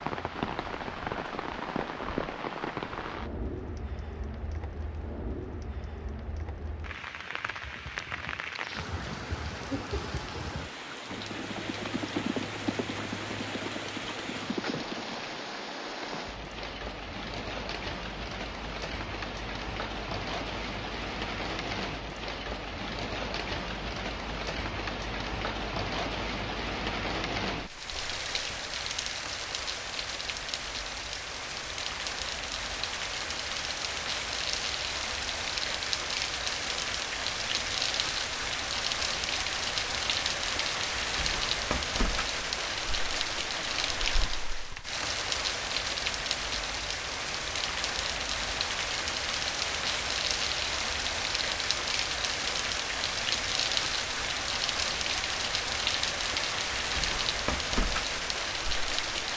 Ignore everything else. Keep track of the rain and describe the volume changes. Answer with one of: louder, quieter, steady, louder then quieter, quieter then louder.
louder.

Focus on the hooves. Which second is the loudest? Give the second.
12 s.